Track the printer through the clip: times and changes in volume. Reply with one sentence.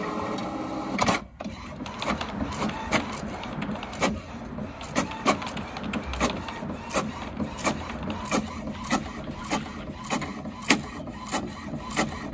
The printer can be heard from 0.0 to 12.2 s, at a steady volume.